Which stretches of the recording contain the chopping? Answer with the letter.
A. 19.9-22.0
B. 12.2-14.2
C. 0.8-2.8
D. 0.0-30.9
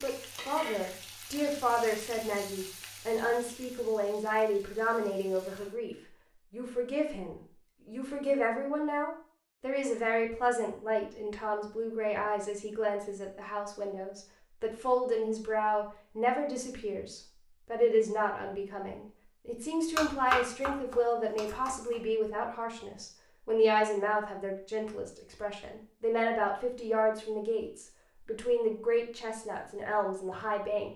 A.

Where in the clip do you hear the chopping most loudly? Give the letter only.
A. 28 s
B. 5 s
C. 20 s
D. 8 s
C.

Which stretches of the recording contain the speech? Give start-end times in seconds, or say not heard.
0.0-30.9.